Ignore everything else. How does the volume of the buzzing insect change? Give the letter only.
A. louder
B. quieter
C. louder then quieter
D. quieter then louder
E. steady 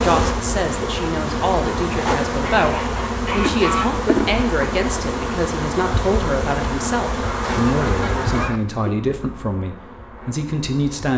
B.